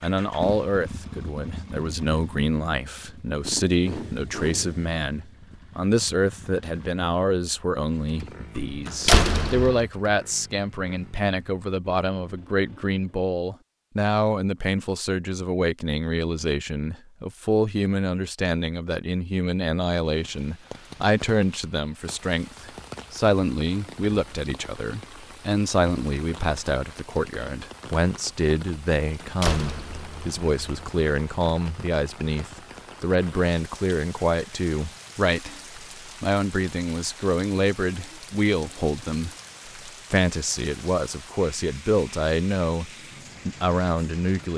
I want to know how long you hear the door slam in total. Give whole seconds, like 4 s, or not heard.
3 s.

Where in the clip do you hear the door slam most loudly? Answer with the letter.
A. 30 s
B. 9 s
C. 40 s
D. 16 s
B.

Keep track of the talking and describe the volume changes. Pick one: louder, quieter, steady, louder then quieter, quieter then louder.
steady.